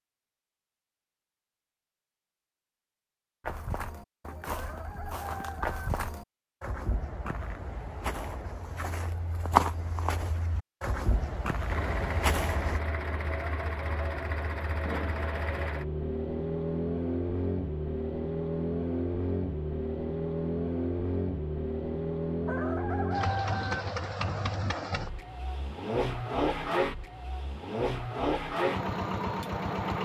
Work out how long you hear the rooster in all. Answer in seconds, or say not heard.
3 s.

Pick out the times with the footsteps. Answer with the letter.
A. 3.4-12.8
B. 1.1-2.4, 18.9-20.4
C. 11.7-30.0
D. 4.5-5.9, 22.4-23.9
A.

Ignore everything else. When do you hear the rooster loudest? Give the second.
23 s.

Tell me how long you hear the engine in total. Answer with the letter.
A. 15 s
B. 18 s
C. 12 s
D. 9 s
B.